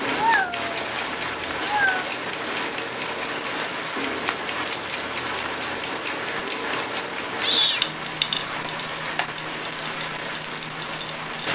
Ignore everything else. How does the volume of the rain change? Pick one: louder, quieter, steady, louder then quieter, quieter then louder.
steady.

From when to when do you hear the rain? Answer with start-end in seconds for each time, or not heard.
0.0-11.5.